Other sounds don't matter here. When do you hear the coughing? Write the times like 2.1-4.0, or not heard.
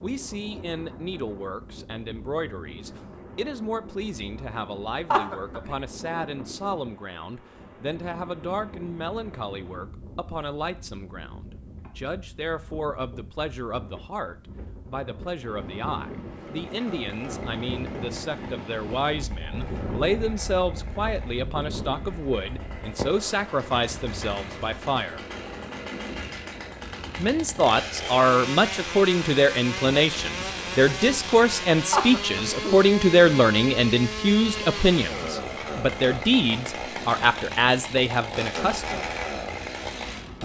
5.1-5.8, 31.9-32.8.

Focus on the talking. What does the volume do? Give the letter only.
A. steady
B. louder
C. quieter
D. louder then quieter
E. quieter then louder
B.